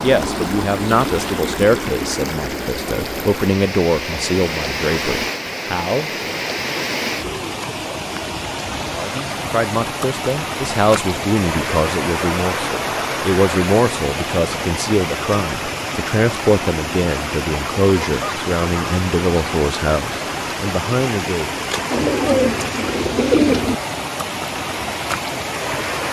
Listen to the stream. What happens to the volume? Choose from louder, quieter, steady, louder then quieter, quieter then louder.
steady.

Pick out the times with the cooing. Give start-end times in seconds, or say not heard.
21.9-23.8.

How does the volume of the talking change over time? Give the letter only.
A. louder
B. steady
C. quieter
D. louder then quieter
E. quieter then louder
B.